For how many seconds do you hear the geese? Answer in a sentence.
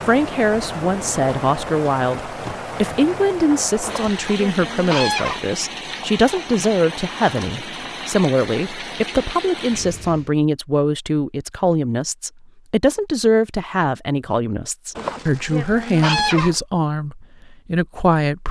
You can hear the geese for 3 seconds altogether.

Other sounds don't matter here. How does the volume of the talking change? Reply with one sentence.
The volume of the talking stays about the same.